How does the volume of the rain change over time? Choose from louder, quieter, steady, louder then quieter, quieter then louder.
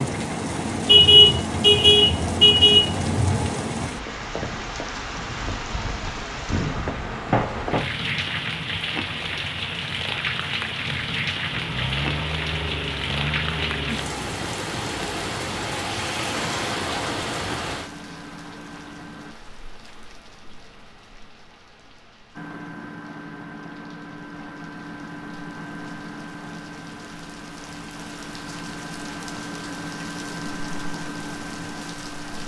quieter then louder.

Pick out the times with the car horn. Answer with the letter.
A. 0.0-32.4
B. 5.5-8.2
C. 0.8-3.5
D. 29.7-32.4
C.